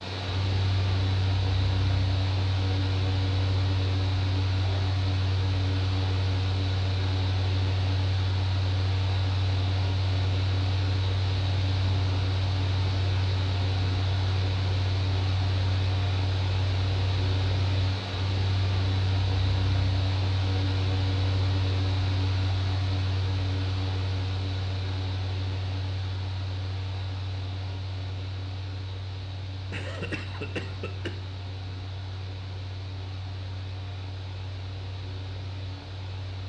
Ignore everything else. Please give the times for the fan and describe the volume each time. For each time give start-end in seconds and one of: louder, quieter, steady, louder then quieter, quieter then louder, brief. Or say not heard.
0.0-36.4 quieter.